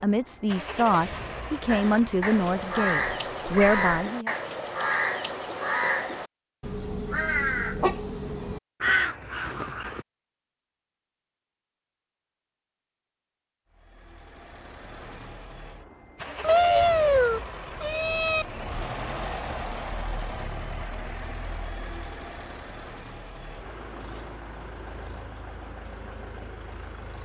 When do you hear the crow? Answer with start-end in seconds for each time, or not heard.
1.6-10.1.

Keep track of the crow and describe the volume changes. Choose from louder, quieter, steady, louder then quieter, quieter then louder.
steady.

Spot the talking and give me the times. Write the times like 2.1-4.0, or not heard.
0.0-4.3.